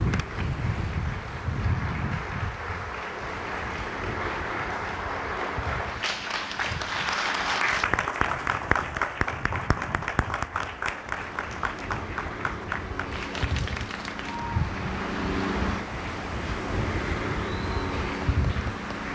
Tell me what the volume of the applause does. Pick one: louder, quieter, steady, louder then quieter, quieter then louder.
louder then quieter.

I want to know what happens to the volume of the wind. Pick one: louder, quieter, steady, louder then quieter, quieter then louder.
quieter then louder.